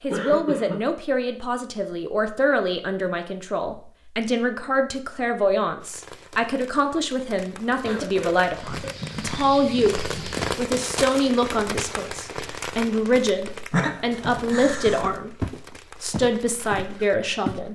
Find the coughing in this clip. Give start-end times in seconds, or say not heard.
0.1-0.8, 7.8-9.1, 13.7-15.2.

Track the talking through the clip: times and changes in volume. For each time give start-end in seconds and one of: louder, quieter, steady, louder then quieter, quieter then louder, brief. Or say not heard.
0.0-17.7 steady.